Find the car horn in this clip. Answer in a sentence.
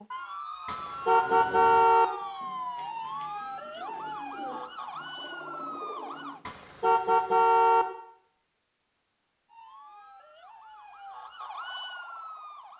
The car horn can be heard from 0.7 to 2.0 s and from 6.5 to 7.8 s.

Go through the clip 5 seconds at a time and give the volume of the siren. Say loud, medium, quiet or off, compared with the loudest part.
loud, loud, medium.